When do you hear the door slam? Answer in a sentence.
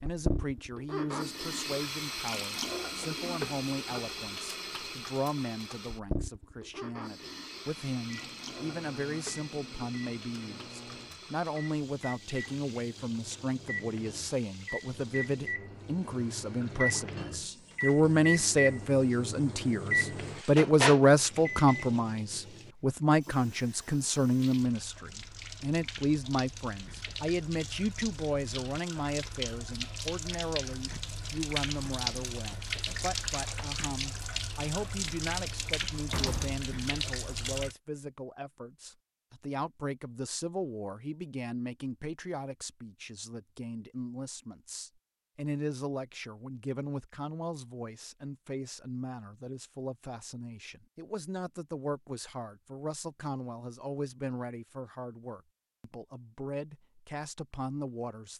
You can hear the door slam from 36.0 to 36.6 s.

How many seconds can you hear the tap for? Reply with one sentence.
The tap can be heard for 38 seconds in total.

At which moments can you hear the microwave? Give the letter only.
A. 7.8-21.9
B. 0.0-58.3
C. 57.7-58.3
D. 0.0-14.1
A.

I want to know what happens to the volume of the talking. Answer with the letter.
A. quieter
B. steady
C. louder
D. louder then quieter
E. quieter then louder
D.